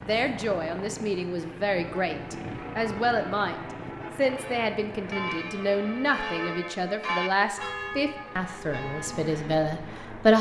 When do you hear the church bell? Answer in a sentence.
You can hear the church bell from 1.7 to 9.3 s.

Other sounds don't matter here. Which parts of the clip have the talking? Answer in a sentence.
You can hear the talking from 0.0 to 3.5 s and from 4.2 to 10.3 s.